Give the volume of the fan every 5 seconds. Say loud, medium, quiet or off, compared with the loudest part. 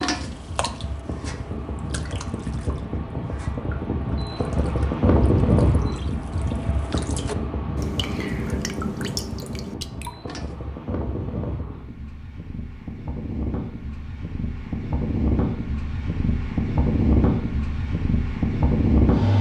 medium, loud, medium, loud.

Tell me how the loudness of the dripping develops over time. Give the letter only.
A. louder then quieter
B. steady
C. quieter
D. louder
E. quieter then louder
E.